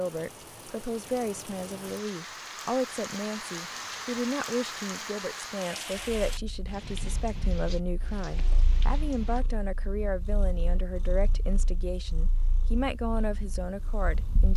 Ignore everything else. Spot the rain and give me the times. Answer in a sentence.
You can hear the rain from 0.0 to 9.4 s.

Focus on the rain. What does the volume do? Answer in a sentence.
The volume of the rain goes up, then down.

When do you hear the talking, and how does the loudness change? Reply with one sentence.
The talking can be heard from 0.0 to 14.5 s, at a steady volume.